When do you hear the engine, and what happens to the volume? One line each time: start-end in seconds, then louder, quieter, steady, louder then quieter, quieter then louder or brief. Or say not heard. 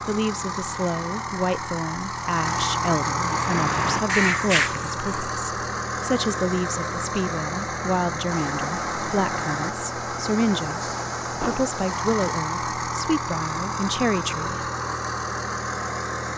0.0-16.3 steady.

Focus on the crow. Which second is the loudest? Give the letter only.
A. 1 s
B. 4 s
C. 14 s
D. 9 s
B.